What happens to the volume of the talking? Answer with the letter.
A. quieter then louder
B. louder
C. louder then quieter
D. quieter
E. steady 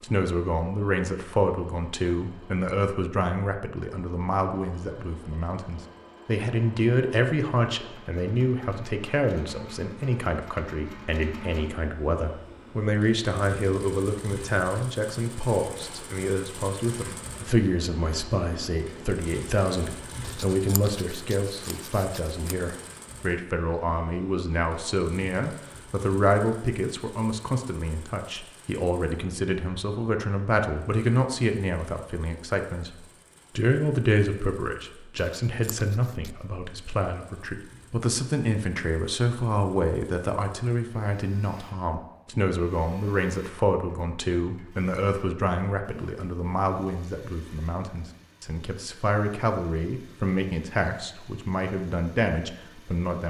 E.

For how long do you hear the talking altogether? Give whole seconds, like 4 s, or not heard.
53 s.